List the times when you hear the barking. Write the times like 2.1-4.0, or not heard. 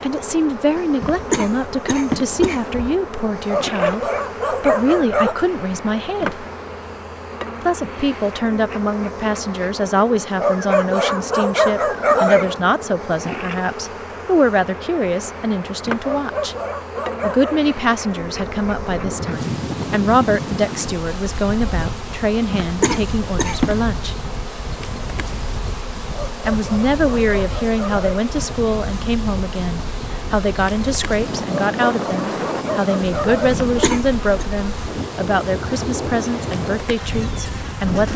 3.5-5.3, 10.4-12.6, 16.0-17.8, 26.1-28.2, 31.4-34.0.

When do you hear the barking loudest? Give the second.
12 s.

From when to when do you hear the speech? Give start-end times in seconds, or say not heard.
0.0-6.5, 7.6-16.6, 17.2-24.1, 26.4-38.1.